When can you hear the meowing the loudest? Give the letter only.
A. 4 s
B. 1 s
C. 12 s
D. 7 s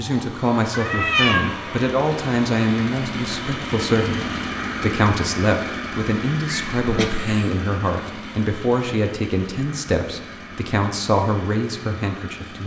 B.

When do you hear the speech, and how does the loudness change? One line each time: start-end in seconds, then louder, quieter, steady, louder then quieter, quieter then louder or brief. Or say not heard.
0.0-12.6 steady.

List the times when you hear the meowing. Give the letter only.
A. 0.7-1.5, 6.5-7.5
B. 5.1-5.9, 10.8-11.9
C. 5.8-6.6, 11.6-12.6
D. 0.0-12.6
A.